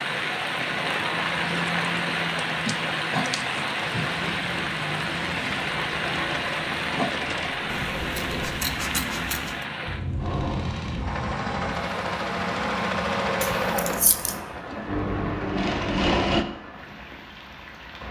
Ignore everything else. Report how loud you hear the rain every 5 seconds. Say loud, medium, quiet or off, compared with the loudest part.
loud, loud, medium, quiet.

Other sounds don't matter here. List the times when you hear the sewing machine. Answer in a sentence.
The sewing machine can be heard from 4.0 to 8.6 s and from 10.2 to 16.4 s.